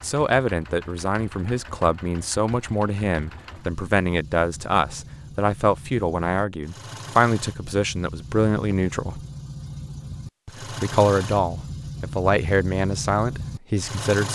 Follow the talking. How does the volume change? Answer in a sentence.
The loudness of the talking stays about the same.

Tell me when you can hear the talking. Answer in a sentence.
The talking can be heard from 0.0 to 9.2 s and from 10.4 to 14.2 s.